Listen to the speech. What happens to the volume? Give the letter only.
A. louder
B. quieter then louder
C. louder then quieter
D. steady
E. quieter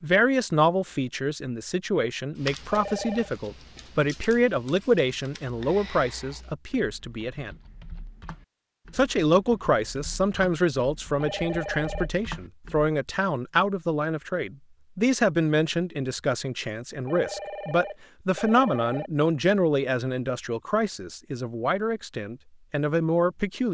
D.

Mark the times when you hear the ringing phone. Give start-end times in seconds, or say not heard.
2.7-3.4, 11.2-12.1, 17.1-19.1.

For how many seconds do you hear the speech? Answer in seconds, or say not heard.
22 s.